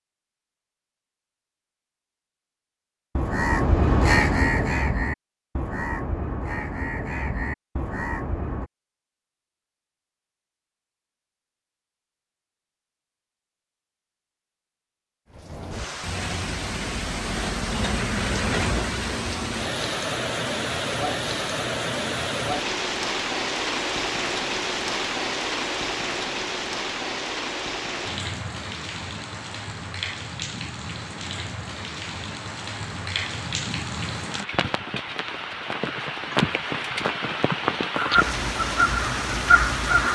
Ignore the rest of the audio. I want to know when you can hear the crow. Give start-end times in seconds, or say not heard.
3.1-8.7, 38.0-40.0.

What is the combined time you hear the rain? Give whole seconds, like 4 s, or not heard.
25 s.